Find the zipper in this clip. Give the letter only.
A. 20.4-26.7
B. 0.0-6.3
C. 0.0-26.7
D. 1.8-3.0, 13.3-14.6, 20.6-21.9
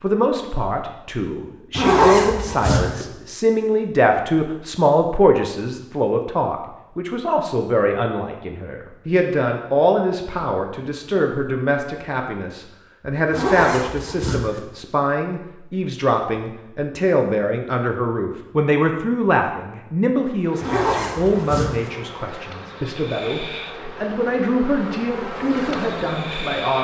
D.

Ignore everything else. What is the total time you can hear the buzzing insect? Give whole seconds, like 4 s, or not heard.
6 s.